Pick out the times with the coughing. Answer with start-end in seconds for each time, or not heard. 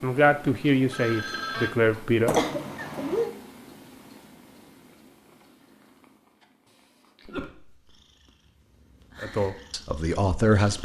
2.2-3.4, 6.7-7.9.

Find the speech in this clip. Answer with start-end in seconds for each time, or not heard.
0.0-2.4, 9.2-10.8.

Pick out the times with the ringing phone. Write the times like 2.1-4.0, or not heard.
0.5-1.8.